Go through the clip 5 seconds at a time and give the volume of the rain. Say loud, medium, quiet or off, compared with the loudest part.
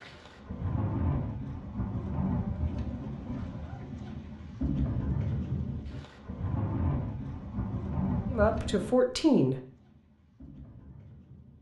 loud, loud, quiet.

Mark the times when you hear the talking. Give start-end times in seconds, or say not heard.
8.3-9.6.